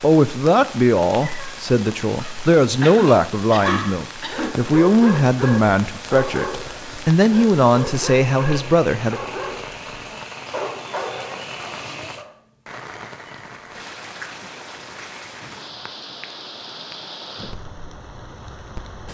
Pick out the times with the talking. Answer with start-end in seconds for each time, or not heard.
0.0-9.2.